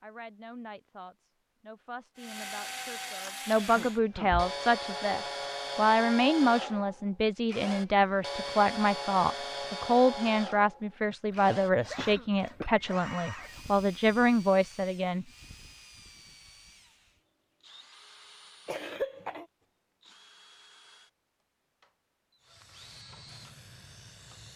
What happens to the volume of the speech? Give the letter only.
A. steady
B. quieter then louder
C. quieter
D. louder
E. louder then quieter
D.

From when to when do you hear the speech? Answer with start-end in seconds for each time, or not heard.
0.0-15.2.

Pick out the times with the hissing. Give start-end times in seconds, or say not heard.
22.4-24.5.